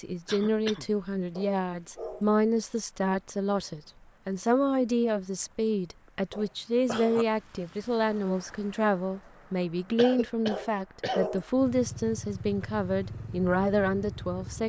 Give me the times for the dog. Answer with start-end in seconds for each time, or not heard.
1.4-2.3, 6.3-7.2, 10.5-11.4.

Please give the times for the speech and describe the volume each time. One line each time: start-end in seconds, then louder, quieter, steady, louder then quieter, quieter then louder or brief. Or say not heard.
0.0-14.6 steady.